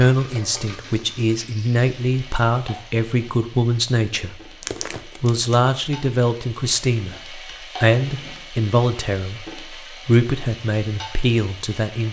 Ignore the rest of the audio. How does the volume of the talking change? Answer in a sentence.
The volume of the talking stays about the same.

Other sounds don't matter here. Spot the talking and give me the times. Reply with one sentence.
The talking can be heard from 0.0 to 4.3 s and from 5.2 to 12.0 s.